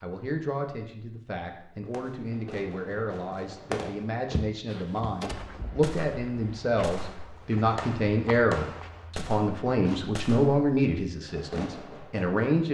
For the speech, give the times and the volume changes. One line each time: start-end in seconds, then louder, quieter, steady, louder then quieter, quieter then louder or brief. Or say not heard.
0.0-12.6 louder.